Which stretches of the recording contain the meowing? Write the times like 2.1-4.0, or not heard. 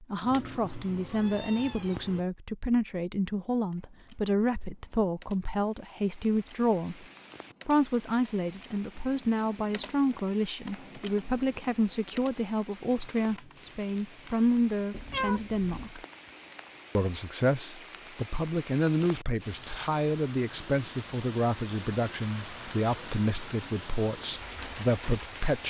0.2-2.2, 14.9-15.9.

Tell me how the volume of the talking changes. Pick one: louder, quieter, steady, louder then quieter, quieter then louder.
steady.